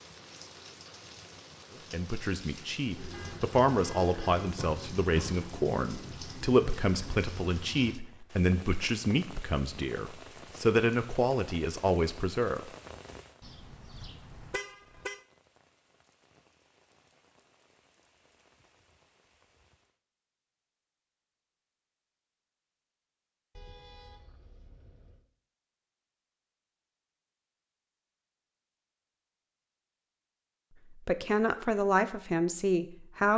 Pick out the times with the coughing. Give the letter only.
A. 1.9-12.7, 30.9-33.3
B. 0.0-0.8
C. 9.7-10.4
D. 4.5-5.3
D.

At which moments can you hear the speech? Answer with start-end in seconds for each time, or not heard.
1.9-12.7, 30.9-33.3.